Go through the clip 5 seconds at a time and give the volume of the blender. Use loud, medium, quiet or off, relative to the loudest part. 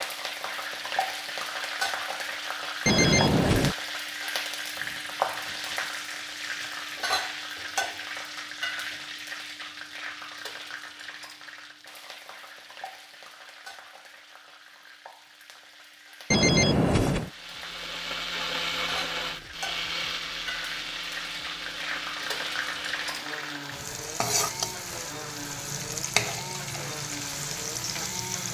off, off, off, loud, medium, medium.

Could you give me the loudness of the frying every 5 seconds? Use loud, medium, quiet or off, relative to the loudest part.
loud, loud, medium, medium, loud, loud.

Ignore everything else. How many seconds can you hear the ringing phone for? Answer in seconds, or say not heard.
2 s.